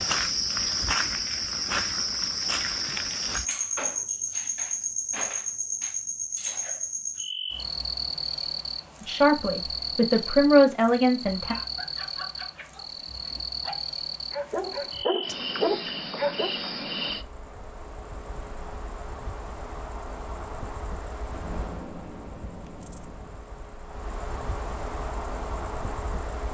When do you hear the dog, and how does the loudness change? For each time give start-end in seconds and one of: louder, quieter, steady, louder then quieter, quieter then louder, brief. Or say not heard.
11.3-16.6 quieter then louder.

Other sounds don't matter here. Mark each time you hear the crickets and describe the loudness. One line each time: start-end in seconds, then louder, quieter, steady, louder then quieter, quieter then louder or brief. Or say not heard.
0.0-26.4 quieter.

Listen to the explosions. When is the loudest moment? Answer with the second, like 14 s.
22 s.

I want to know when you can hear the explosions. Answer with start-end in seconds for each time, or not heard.
21.3-23.4.